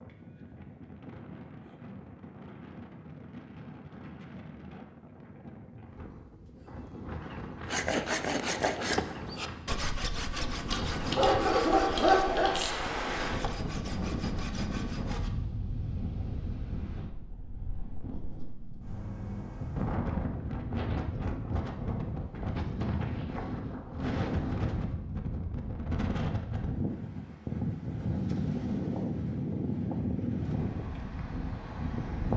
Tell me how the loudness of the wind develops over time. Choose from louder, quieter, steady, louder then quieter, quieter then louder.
louder.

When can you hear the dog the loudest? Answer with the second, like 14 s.
12 s.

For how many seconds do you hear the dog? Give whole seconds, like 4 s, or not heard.
2 s.